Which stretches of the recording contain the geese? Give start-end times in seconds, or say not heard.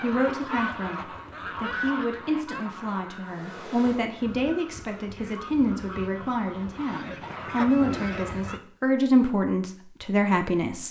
0.0-8.6.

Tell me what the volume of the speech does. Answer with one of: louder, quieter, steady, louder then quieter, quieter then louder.
louder.